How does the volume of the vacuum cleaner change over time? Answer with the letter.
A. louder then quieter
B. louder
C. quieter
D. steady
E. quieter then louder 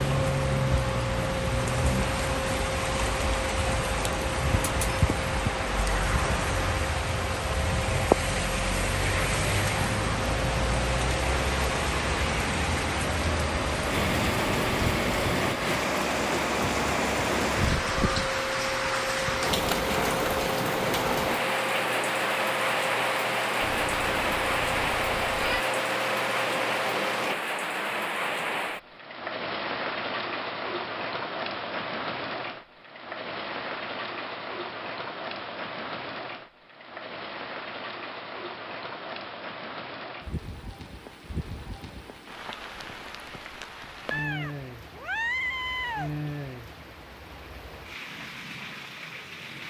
D.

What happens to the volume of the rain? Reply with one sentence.
The volume of the rain goes down.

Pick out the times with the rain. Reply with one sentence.
You can hear the rain from 0.0 to 49.6 s.